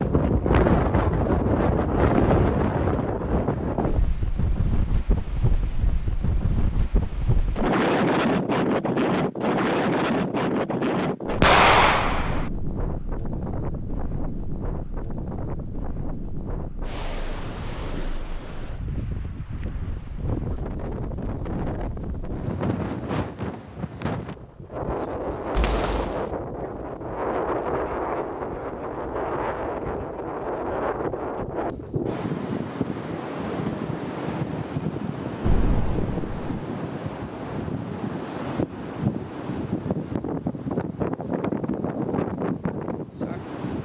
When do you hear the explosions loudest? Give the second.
12 s.